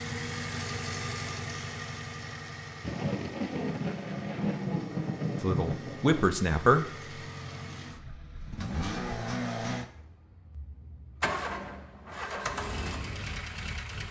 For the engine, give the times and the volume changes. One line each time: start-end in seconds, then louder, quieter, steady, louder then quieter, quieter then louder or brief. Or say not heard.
0.0-14.0 quieter then louder.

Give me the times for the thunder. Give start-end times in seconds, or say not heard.
2.8-6.2.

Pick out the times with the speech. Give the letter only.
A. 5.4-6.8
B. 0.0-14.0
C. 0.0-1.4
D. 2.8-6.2
A.